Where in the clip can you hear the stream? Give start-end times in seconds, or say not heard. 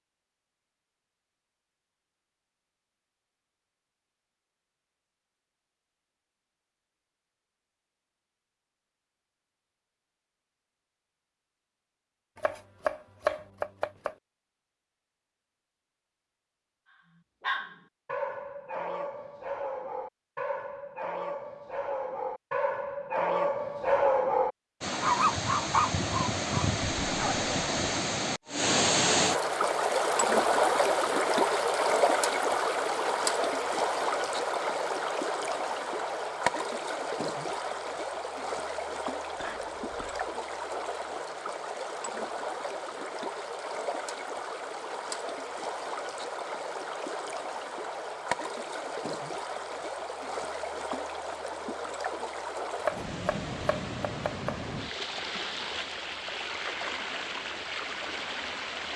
24.8-58.9.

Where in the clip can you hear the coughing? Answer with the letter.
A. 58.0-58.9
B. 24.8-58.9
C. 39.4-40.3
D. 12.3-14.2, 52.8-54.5
C.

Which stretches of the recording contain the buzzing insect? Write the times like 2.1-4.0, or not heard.
not heard.